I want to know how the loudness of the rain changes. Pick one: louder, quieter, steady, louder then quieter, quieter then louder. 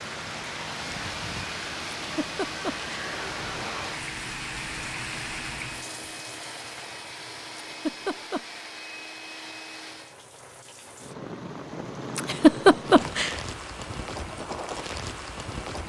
quieter then louder.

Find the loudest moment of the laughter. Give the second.
13 s.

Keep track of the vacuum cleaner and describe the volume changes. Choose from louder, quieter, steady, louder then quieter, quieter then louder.
steady.